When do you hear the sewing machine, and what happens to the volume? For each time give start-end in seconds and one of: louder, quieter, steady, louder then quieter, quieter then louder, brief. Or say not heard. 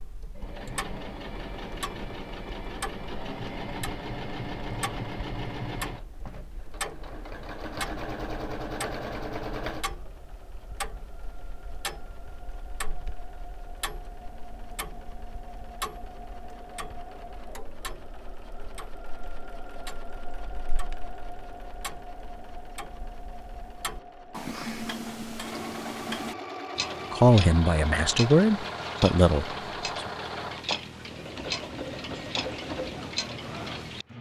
0.1-34.1 quieter then louder.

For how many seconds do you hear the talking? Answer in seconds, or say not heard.
3 s.